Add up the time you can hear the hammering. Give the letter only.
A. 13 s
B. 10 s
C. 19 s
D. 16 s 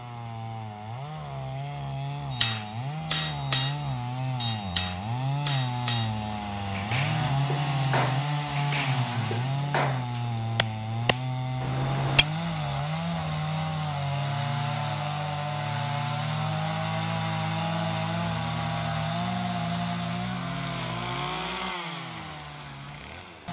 B.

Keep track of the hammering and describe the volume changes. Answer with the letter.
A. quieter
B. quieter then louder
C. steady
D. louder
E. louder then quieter
A.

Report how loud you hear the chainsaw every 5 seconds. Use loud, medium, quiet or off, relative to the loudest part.
medium, loud, loud, loud, medium.